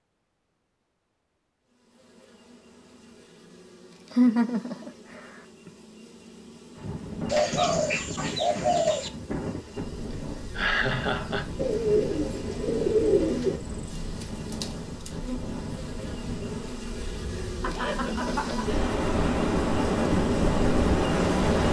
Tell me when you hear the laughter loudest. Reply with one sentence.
The loudest moment of the laughter is at 4 seconds.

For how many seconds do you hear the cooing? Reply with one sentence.
You can hear the cooing for 4 seconds altogether.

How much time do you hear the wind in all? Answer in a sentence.
The wind can be heard for 15 seconds in total.